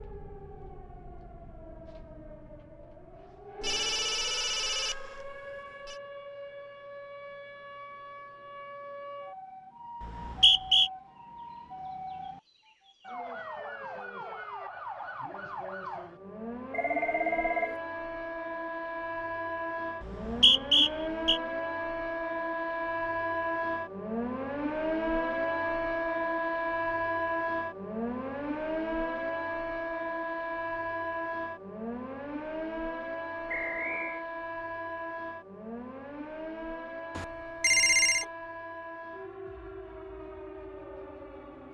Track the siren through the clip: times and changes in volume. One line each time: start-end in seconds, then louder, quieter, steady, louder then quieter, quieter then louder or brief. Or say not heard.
0.0-41.6 louder then quieter.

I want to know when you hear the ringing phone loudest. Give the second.
38 s.